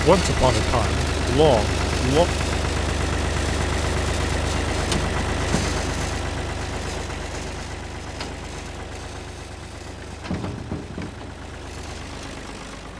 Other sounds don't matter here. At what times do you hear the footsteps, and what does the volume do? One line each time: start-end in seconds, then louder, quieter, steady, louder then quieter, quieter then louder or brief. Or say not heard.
not heard.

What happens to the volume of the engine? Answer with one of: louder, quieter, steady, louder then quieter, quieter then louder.
quieter.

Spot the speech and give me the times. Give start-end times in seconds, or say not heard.
0.0-2.2.